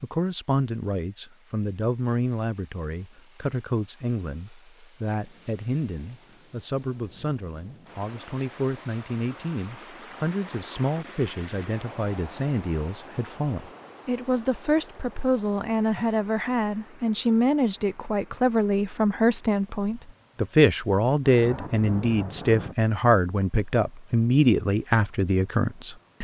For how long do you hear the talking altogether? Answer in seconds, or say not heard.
26 s.